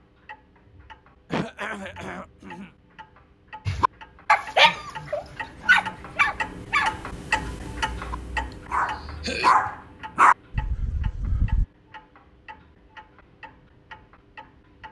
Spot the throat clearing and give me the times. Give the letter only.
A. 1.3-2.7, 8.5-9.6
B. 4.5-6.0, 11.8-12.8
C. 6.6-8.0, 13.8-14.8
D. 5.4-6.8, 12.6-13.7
A.